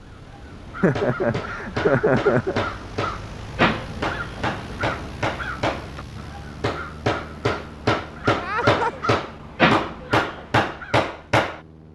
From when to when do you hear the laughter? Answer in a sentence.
You can hear the laughter from 0.8 to 2.6 s and from 8.3 to 9.1 s.